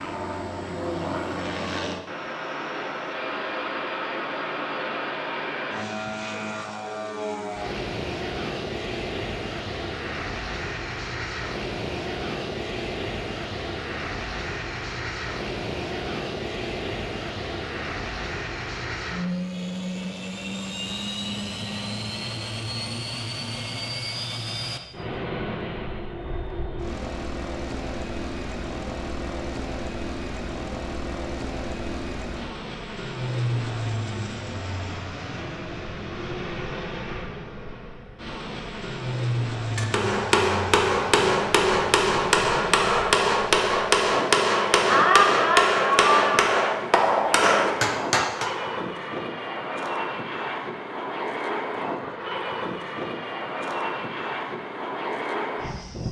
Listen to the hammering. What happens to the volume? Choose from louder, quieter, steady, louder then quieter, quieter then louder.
steady.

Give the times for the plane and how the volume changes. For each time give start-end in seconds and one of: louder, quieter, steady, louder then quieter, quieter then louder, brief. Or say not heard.
0.0-56.0 steady.